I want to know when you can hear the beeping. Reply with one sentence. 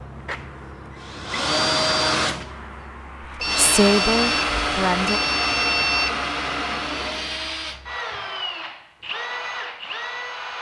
The beeping can be heard from 3.4 to 6.2 s.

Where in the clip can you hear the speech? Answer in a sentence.
The speech can be heard from 3.5 to 5.2 s.